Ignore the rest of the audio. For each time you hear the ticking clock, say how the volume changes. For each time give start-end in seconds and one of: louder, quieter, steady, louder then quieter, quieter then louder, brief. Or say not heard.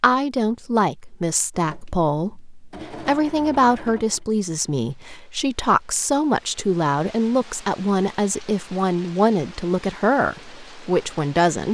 not heard.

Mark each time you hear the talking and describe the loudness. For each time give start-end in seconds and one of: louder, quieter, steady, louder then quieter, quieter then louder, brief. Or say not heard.
0.0-11.6 steady.